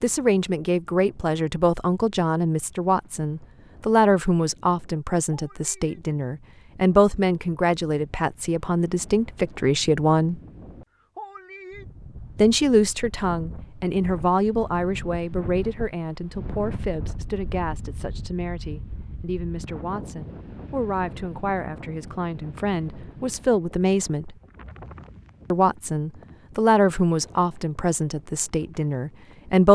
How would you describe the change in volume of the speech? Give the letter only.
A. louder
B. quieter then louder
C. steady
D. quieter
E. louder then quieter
B.